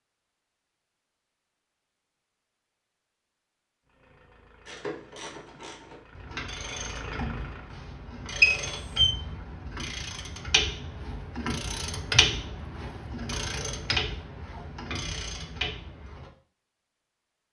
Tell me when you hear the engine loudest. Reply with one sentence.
The loudest moment of the engine is at 7 seconds.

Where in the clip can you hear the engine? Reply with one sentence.
The engine can be heard from 3.8 to 7.8 s.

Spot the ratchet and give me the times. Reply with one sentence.
The ratchet can be heard from 4.7 to 16.3 s.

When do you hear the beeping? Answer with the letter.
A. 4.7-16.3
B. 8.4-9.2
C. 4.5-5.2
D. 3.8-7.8
B.